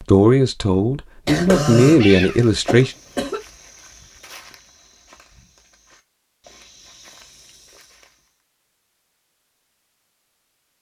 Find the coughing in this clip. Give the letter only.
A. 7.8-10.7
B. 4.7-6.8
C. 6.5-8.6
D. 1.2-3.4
D.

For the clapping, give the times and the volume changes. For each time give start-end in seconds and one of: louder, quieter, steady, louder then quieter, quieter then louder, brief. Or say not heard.
not heard.